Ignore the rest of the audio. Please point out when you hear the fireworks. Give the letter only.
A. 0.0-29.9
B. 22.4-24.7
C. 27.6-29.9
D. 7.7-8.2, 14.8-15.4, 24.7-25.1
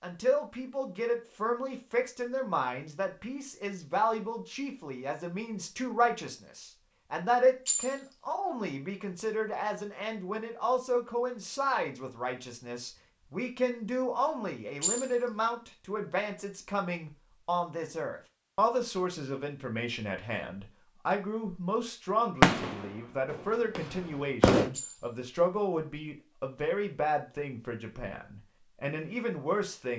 B.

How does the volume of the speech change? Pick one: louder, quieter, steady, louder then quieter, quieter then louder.
steady.